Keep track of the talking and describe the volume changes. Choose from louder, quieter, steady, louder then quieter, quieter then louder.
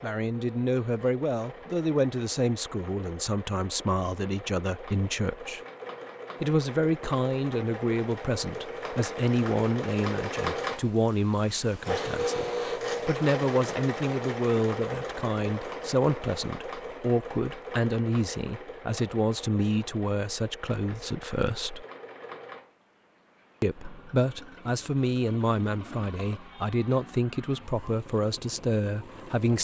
steady.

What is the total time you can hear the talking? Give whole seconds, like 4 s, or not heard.
27 s.